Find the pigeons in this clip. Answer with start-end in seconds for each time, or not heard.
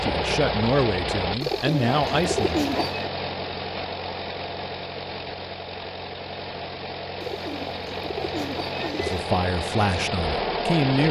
1.4-3.1, 7.2-9.2.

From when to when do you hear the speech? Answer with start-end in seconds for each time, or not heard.
0.0-2.6, 8.9-11.0.